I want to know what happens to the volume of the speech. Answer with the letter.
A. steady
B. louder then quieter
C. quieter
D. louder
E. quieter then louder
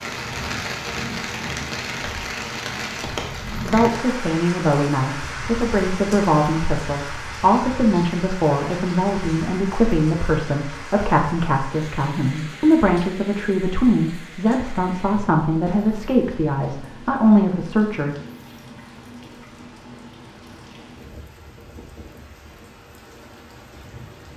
A.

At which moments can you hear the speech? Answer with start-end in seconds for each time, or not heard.
3.6-18.1.